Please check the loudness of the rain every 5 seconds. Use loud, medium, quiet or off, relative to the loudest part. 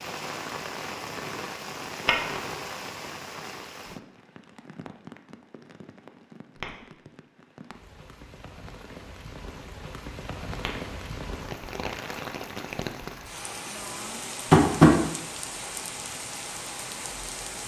loud, medium, loud, loud.